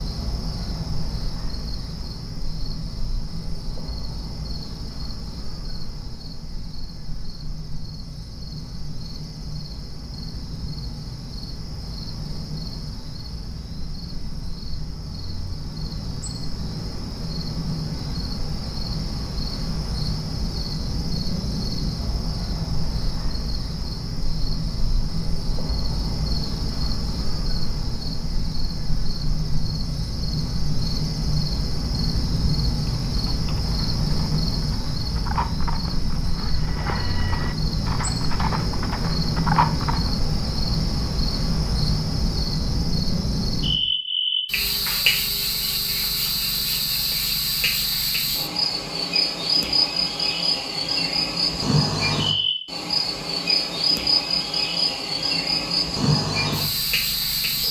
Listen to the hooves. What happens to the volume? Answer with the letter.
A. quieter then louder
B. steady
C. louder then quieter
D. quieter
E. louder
E.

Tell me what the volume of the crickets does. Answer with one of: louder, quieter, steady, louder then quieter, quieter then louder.
louder.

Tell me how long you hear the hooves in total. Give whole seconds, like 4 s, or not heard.
7 s.